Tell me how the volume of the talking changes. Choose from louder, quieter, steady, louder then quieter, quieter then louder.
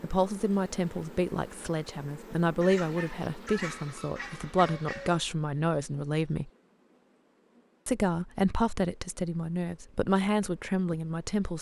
steady.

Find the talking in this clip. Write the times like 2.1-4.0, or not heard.
0.0-6.5, 7.8-11.5.